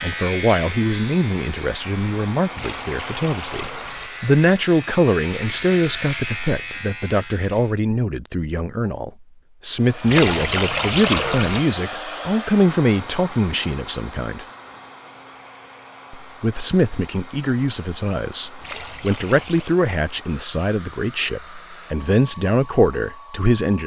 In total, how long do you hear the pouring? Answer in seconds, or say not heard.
4 s.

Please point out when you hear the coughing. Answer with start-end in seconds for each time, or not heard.
not heard.